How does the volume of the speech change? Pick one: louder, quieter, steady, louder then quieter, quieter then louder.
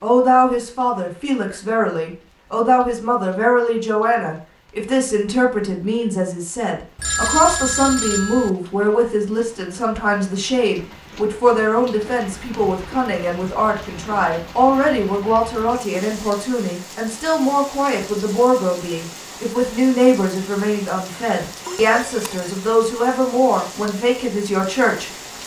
steady.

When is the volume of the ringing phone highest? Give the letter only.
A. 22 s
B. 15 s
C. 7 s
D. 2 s
C.